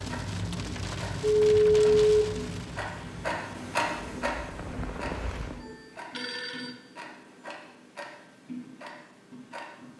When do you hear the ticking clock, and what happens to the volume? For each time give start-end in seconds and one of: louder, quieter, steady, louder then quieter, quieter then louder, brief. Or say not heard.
0.0-9.9 louder then quieter.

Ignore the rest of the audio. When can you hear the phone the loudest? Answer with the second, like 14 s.
2 s.